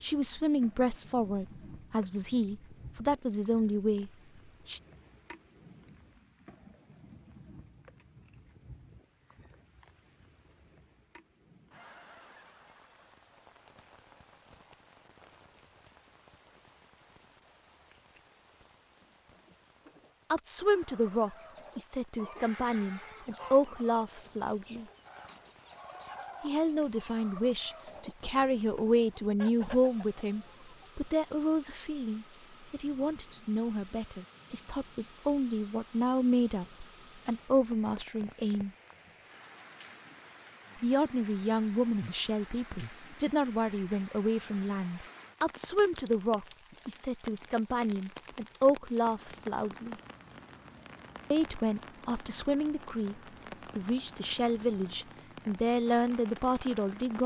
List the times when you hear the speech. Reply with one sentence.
You can hear the speech from 0.0 to 4.8 s, from 20.3 to 24.9 s, from 26.4 to 38.7 s, from 40.8 to 50.0 s and from 51.3 to 57.2 s.